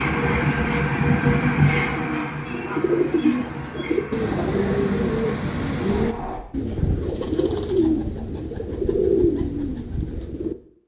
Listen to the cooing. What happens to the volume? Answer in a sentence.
The volume of the cooing stays about the same.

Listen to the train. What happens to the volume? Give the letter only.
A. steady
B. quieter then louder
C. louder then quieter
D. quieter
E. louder
D.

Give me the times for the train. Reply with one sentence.
The train can be heard from 0.0 to 6.4 s.